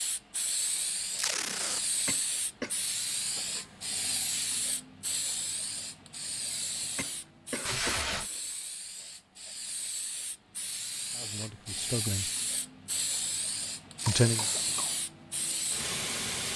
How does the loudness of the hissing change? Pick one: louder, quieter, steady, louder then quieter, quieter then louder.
quieter then louder.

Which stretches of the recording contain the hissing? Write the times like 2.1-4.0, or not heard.
0.0-16.5.